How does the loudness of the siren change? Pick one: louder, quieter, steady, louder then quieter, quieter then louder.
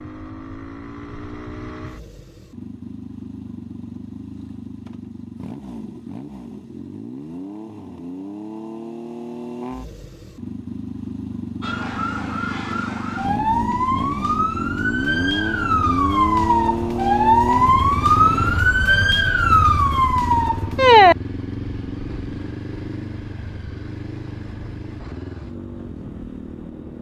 louder.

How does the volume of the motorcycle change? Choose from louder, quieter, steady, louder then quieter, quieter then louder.
louder then quieter.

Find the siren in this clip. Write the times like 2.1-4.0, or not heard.
11.6-21.1.